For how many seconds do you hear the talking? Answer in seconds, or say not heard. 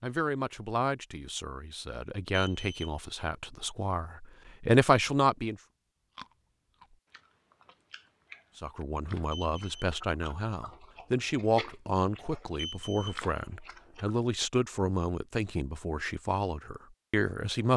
15 s.